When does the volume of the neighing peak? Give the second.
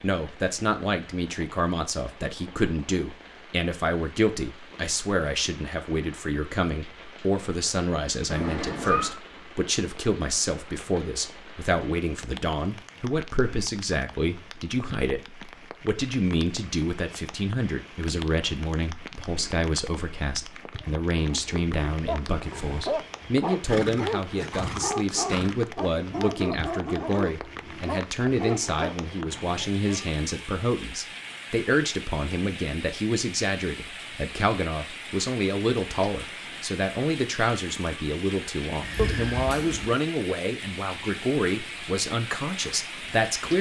9 s.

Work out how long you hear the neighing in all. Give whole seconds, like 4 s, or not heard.
4 s.